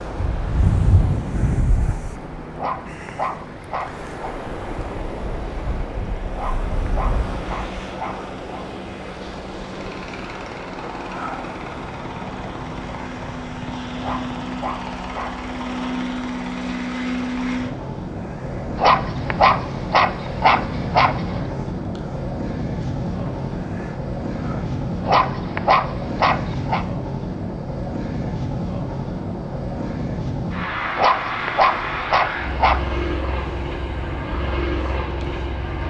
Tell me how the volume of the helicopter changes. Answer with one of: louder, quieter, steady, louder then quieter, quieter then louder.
louder.